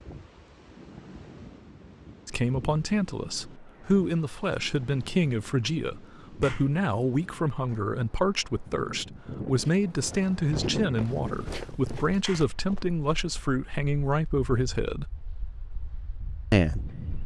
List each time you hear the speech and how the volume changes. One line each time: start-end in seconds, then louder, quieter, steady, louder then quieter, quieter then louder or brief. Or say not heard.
2.2-15.1 steady
16.5-17.1 brief.